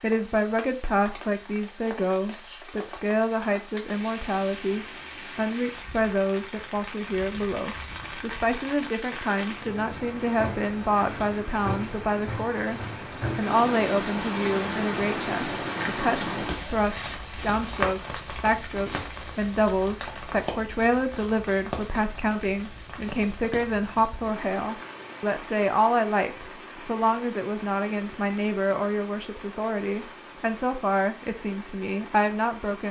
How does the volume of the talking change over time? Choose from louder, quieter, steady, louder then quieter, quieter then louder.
steady.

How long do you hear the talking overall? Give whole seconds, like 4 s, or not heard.
33 s.